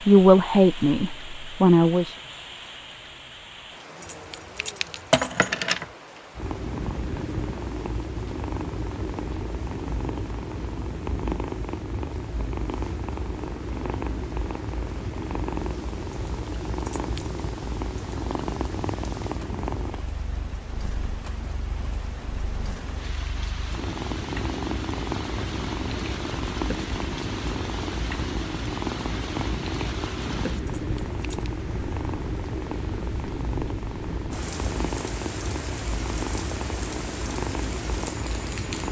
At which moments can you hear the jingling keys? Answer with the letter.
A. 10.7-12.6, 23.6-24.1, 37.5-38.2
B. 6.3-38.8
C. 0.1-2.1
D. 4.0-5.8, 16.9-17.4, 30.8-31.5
D.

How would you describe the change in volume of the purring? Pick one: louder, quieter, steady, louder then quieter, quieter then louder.
steady.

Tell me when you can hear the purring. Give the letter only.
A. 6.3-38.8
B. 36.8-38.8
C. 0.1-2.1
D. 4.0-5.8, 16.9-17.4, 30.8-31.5
A.